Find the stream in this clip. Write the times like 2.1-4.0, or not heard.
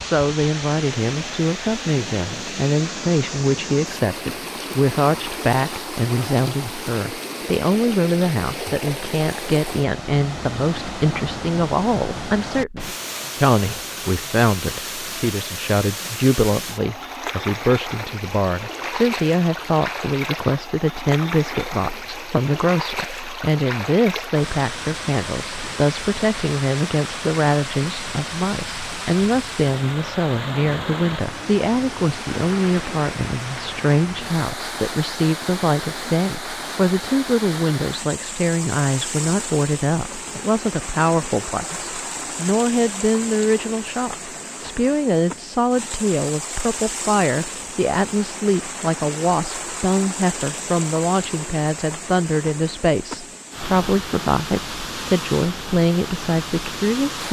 0.0-57.2.